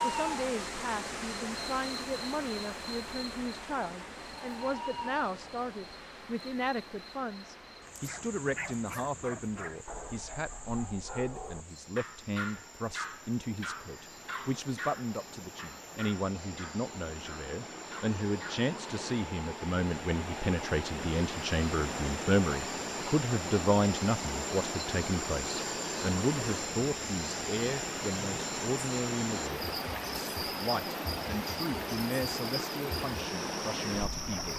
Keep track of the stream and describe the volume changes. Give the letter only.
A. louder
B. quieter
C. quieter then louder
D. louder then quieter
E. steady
C.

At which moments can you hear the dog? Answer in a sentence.
The dog can be heard from 8.1 to 18.6 s.